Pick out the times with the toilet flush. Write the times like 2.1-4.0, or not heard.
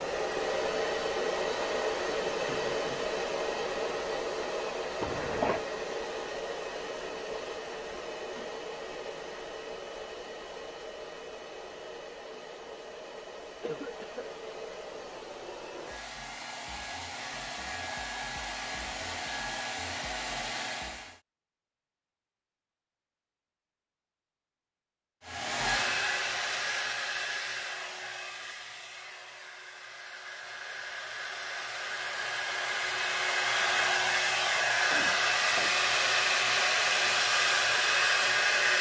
not heard.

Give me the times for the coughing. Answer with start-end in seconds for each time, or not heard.
5.0-5.7, 13.6-14.3, 34.9-35.8.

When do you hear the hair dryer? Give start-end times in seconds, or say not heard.
0.0-21.2, 25.2-38.7.